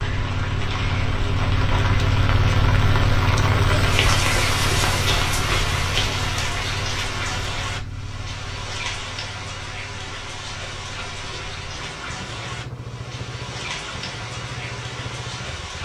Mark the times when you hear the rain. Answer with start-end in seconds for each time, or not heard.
0.0-15.8.